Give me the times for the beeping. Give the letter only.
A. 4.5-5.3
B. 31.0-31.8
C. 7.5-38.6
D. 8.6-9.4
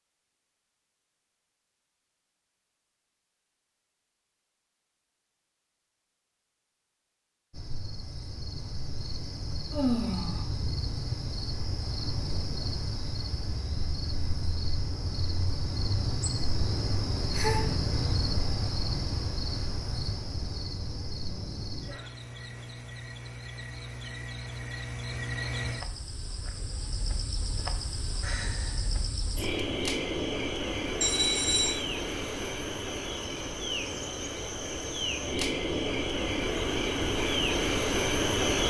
B.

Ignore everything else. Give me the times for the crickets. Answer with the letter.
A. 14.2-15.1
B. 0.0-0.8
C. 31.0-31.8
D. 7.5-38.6
D.